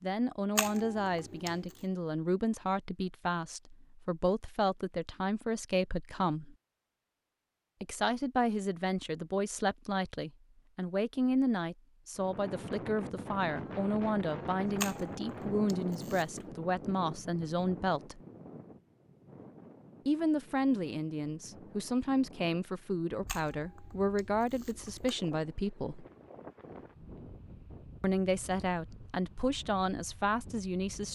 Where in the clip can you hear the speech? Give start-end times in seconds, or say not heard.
0.0-6.5, 7.8-18.2, 20.1-26.1, 28.0-31.1.